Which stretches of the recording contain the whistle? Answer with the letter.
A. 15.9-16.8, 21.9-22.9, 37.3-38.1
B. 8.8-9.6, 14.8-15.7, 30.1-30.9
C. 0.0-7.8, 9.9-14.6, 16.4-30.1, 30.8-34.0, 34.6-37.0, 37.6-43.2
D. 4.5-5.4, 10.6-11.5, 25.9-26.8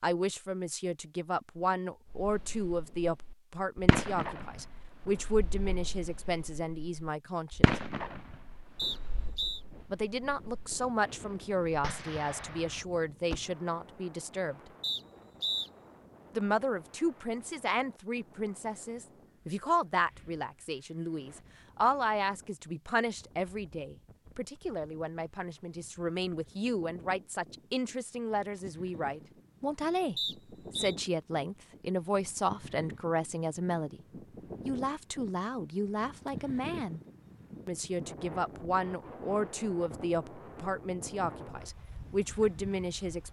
B.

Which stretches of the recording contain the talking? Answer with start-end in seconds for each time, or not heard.
0.0-7.8, 9.9-14.6, 16.4-30.1, 30.8-34.0, 34.6-37.0, 37.6-43.2.